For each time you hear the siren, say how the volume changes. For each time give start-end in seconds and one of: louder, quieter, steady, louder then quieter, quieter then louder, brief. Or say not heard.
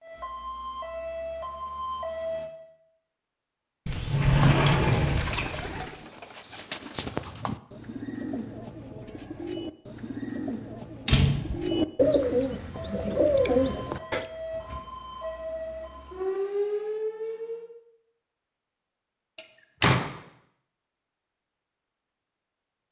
0.0-2.5 brief
12.7-17.6 louder.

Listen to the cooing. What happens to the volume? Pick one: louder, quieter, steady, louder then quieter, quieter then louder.
louder.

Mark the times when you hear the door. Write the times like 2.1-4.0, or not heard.
3.9-5.8, 11.1-11.7, 19.4-20.1.